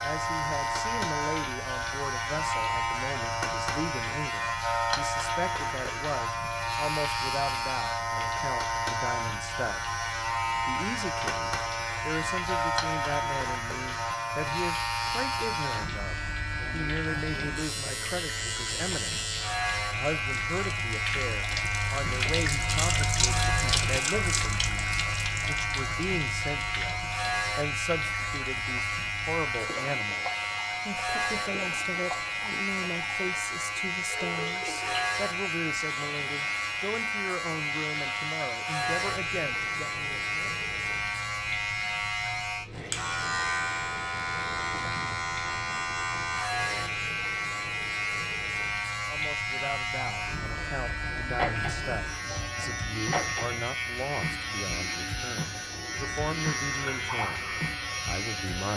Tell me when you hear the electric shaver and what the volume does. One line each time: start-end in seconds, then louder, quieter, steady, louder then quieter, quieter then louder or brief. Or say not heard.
0.0-58.7 steady.